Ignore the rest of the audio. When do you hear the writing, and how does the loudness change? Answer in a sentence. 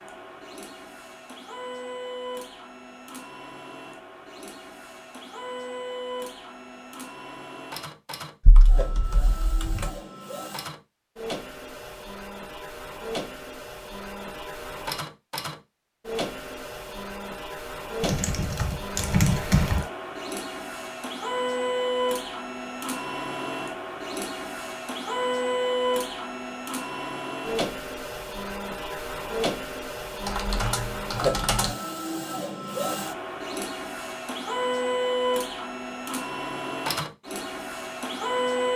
You can't hear the writing here.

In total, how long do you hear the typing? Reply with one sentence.
The typing can be heard for 5 seconds in total.